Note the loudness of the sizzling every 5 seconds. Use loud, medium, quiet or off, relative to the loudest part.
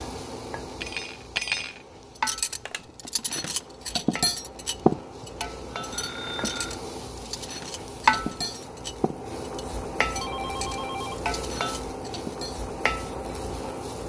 medium, loud, loud.